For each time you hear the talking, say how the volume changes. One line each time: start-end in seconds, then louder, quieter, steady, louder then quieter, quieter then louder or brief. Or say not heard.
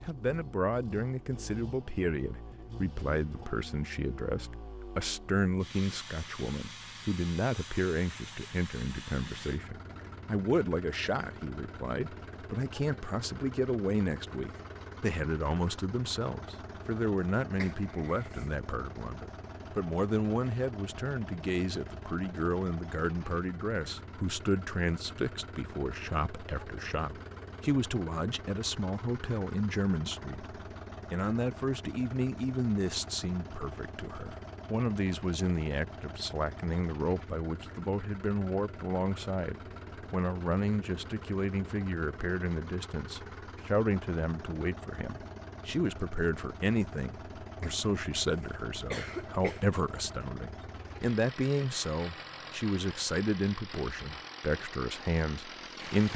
0.1-56.1 steady.